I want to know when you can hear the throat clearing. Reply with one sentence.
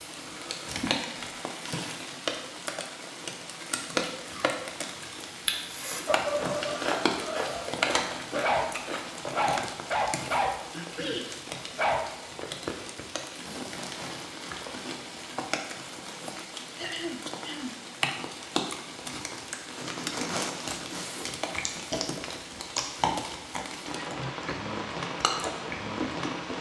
The throat clearing can be heard from 10.7 to 11.3 s and from 16.8 to 17.8 s.